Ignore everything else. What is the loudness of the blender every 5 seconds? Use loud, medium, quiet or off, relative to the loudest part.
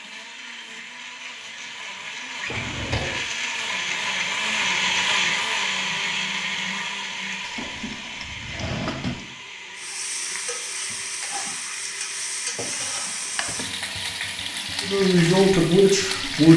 loud, loud, medium, off.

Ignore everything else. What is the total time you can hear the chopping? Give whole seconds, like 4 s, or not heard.
not heard.